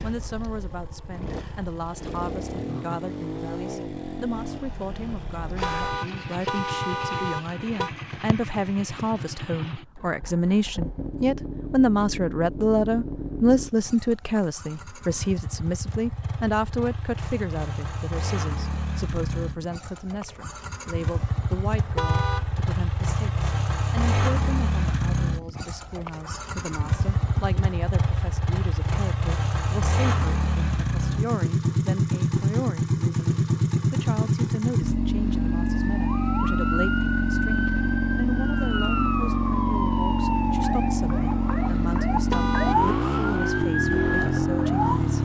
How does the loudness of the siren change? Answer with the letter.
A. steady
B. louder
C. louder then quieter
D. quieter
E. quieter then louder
A.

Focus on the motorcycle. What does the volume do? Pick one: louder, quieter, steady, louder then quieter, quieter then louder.
louder.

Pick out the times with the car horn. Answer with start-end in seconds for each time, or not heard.
5.6-7.9, 21.9-22.5, 42.3-43.0.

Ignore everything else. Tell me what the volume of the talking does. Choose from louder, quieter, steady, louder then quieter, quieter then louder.
louder then quieter.